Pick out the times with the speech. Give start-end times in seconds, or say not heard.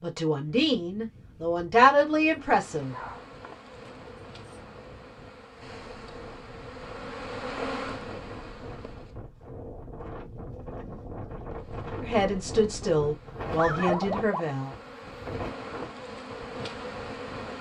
0.0-3.0, 12.0-14.8.